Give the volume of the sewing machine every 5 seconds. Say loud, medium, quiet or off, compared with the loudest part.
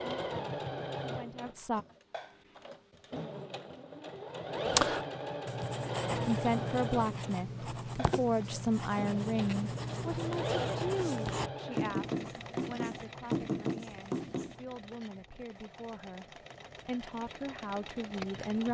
loud, loud, loud, medium.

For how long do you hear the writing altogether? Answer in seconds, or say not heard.
10 s.